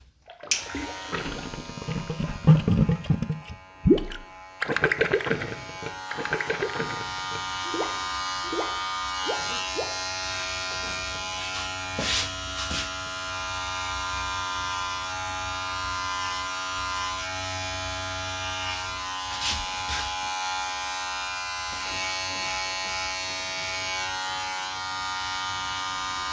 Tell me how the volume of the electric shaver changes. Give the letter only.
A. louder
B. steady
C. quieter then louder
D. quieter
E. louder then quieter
A.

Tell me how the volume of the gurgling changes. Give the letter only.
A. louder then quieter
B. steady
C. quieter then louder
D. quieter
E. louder
A.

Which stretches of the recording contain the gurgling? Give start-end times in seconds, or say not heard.
0.2-9.8.